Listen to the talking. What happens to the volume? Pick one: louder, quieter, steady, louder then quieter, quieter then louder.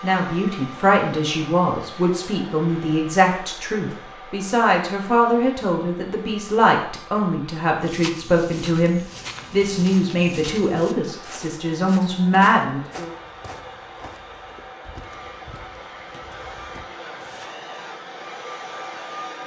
steady.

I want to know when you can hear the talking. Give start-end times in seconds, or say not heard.
0.0-13.2.